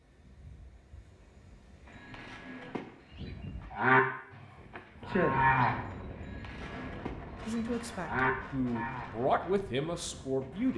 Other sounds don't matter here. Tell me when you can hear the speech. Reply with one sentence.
The speech can be heard from 7.5 to 10.7 s.